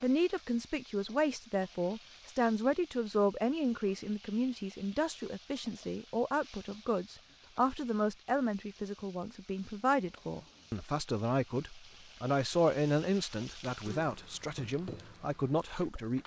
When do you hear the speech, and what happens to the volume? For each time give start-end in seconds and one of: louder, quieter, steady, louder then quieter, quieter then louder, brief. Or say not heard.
0.0-16.2 steady.